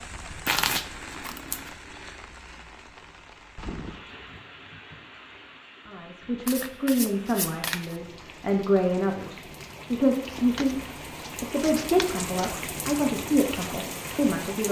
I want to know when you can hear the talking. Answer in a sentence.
The talking can be heard from 5.8 to 10.8 s and from 11.4 to 14.6 s.